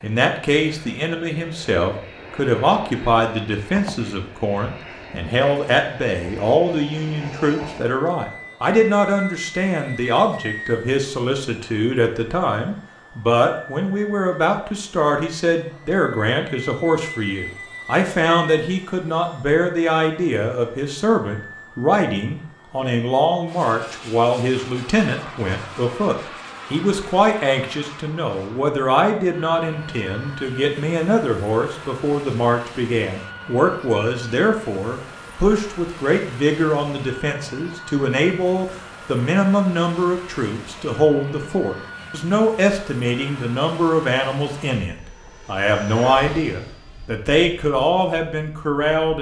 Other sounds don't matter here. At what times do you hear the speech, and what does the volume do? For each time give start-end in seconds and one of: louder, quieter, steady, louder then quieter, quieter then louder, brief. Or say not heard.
0.0-49.1 steady.